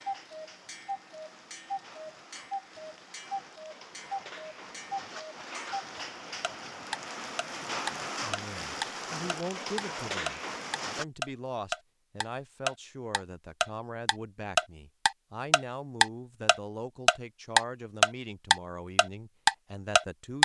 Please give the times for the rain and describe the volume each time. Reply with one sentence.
You can hear the rain from 0.0 to 11.1 s, getting louder.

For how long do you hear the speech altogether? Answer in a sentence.
The speech can be heard for 12 seconds in total.